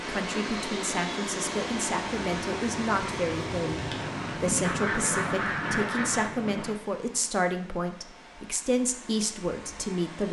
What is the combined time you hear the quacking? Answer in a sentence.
You can hear the quacking for 2 seconds altogether.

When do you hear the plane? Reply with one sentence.
You can hear the plane from 0.2 to 6.8 s.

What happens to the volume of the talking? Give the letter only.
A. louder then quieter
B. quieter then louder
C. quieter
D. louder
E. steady
E.